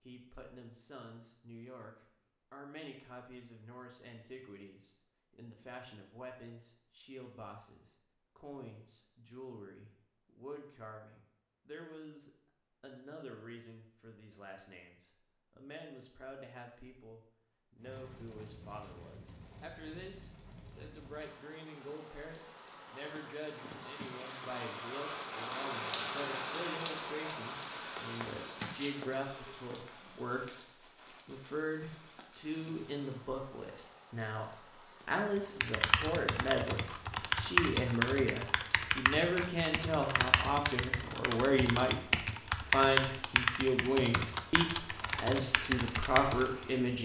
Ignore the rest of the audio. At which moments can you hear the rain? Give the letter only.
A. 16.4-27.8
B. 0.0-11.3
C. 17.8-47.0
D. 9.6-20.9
C.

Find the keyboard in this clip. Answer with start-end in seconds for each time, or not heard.
35.4-46.6.